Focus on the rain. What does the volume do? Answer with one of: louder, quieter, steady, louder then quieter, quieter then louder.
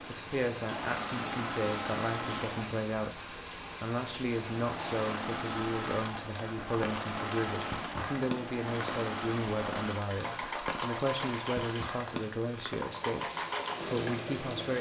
steady.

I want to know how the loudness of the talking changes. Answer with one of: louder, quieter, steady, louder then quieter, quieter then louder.
steady.